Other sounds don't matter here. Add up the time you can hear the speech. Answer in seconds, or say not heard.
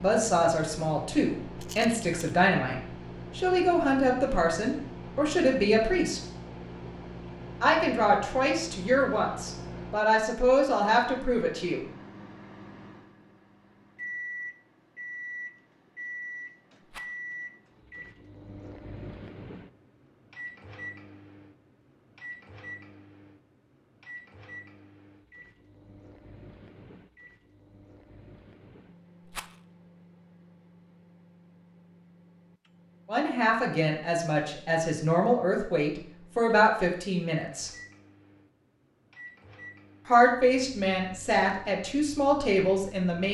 18 s.